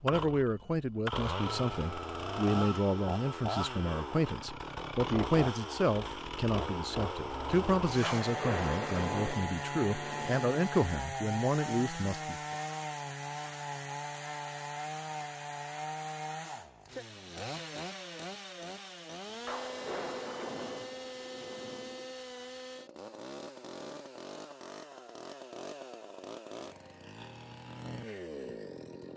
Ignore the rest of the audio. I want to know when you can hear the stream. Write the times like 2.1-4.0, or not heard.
not heard.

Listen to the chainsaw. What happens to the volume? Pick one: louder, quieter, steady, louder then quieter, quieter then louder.
quieter.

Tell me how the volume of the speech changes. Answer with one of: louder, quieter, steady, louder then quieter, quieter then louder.
steady.